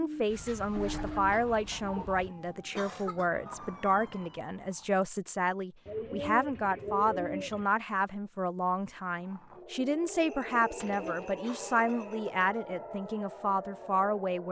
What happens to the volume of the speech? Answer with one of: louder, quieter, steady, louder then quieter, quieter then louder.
steady.